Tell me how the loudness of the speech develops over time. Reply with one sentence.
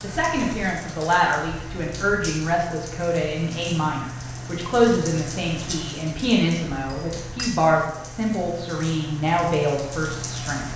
The volume of the speech stays about the same.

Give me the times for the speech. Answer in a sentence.
The speech can be heard from 0.0 to 10.7 s.